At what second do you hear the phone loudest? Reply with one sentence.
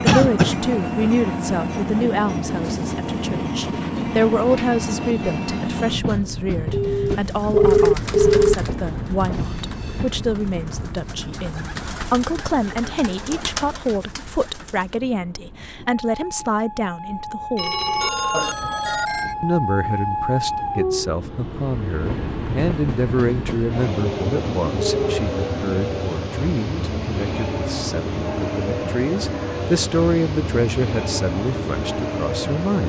The volume of the phone peaks at 8 seconds.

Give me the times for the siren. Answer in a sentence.
The siren can't be heard in this clip.